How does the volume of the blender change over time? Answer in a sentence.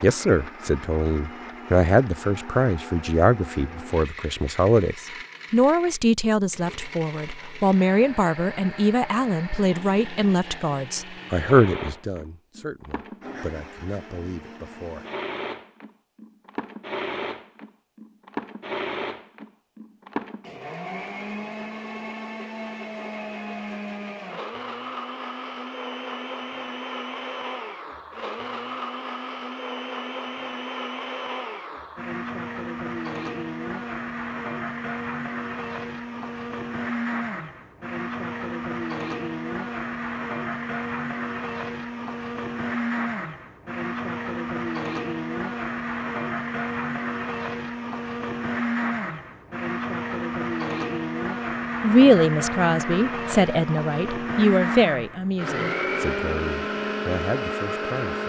The loudness of the blender goes up.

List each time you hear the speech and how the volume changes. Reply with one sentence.
You can hear the speech from 0.0 to 15.1 s, getting quieter; and from 51.8 to 58.2 s, getting quieter.